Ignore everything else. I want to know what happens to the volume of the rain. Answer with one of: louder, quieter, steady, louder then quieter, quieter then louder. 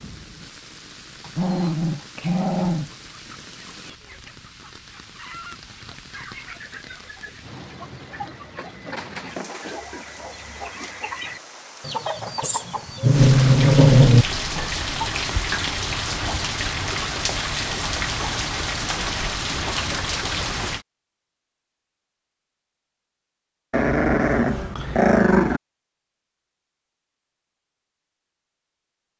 louder.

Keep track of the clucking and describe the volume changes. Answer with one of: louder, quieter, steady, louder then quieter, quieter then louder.
louder.